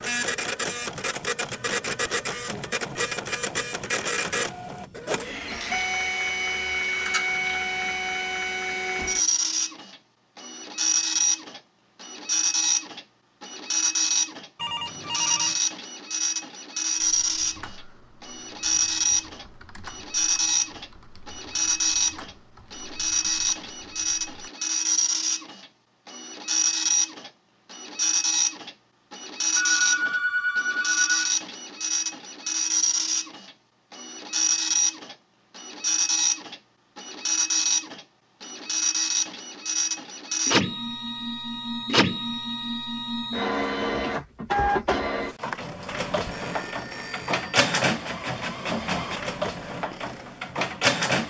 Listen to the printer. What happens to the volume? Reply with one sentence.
The loudness of the printer stays about the same.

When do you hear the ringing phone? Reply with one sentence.
You can hear the ringing phone from 14.6 to 15.6 s, from 29.6 to 31.4 s and from 46.2 to 47.5 s.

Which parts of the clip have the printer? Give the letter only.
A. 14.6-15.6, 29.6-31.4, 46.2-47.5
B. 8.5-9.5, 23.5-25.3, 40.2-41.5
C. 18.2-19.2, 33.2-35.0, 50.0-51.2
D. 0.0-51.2
D.